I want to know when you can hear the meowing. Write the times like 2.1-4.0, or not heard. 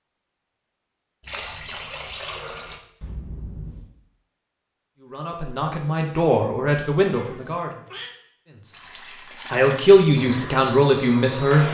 3.0-3.9, 7.2-8.1.